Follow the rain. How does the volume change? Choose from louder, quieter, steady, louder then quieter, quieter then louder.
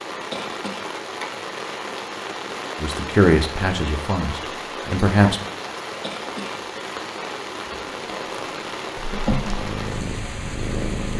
steady.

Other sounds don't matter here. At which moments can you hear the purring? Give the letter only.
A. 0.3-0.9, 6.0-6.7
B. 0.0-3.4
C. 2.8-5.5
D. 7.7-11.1
D.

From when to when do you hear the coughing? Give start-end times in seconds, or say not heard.
0.3-0.9, 6.0-6.7.